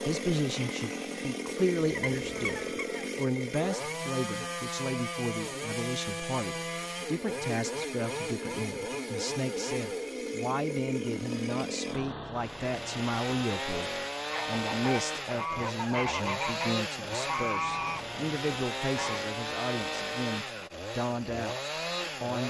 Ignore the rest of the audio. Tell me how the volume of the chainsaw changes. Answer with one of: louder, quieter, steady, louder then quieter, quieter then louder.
steady.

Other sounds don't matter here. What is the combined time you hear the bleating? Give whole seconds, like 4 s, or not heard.
not heard.